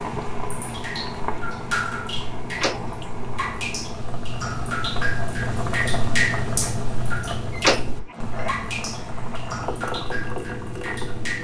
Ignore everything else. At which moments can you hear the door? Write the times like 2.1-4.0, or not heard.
2.5-3.1, 7.5-8.0.